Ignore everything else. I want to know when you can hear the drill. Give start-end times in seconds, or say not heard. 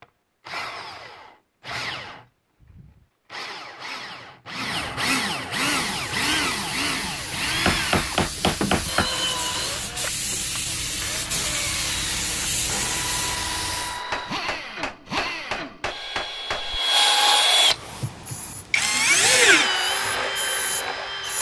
0.0-21.3.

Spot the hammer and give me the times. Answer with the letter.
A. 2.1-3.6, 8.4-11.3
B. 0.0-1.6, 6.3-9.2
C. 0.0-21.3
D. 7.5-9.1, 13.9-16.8
D.